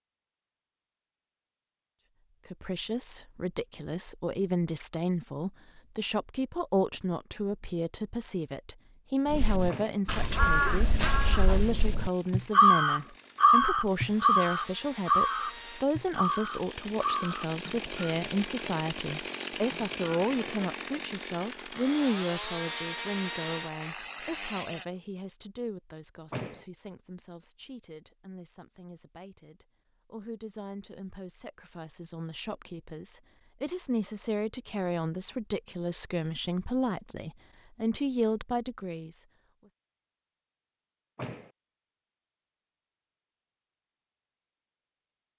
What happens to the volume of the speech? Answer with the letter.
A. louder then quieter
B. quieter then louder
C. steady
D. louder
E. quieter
B.